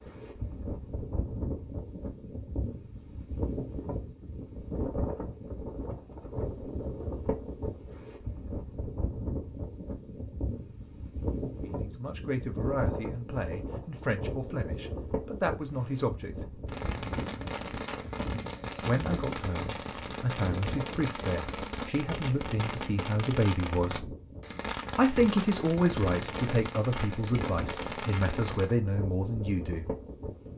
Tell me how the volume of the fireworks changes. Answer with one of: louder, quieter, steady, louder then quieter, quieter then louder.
steady.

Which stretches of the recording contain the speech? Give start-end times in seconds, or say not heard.
11.6-16.6, 18.8-24.1, 24.9-29.9.